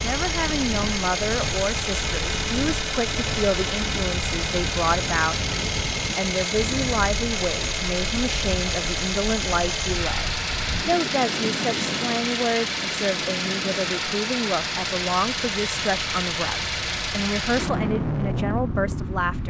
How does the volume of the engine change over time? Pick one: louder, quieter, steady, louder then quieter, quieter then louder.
steady.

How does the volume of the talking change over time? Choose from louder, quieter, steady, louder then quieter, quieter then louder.
steady.